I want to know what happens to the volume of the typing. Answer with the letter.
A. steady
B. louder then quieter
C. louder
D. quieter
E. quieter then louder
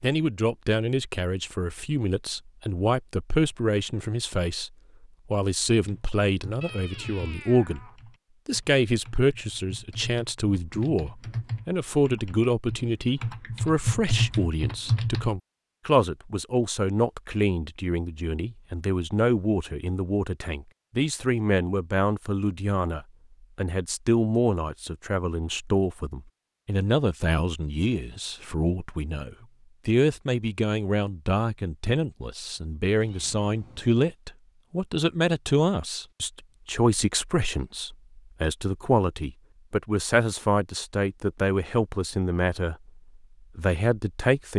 E.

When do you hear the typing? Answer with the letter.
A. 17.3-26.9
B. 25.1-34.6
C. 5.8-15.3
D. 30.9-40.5
C.